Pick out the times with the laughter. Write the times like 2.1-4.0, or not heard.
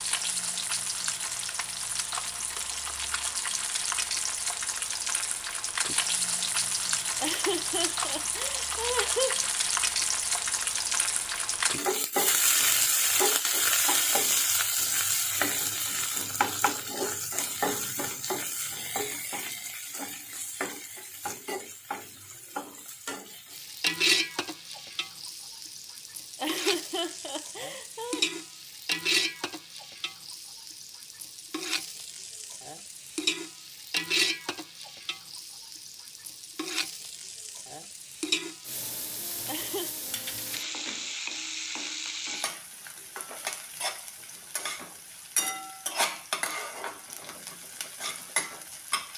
7.2-9.4, 26.4-28.2, 39.5-39.9.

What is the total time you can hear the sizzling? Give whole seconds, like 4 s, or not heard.
49 s.